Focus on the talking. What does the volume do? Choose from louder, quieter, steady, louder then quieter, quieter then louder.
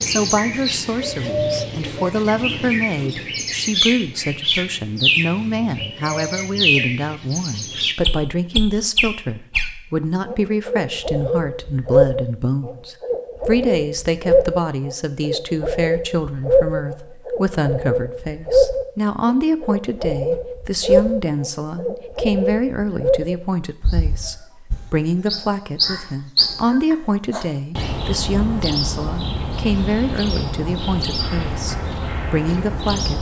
steady.